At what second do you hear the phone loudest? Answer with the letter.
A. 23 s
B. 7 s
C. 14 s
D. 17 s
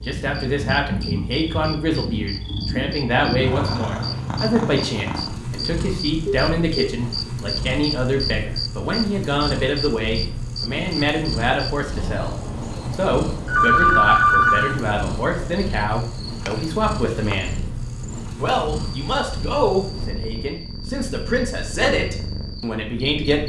C.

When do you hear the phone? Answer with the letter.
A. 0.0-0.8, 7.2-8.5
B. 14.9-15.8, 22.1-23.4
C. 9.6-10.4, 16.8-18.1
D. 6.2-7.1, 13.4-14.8
D.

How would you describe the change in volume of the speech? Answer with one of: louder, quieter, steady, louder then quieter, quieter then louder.
steady.